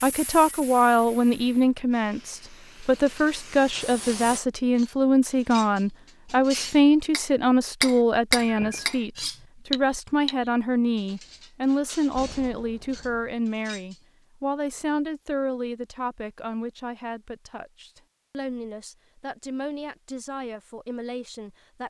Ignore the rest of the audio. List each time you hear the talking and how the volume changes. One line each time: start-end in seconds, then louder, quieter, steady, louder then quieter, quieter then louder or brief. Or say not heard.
0.0-21.8 quieter.